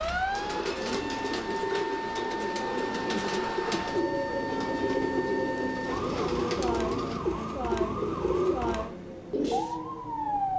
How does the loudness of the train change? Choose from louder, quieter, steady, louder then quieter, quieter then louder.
louder then quieter.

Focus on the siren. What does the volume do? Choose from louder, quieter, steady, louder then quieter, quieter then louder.
steady.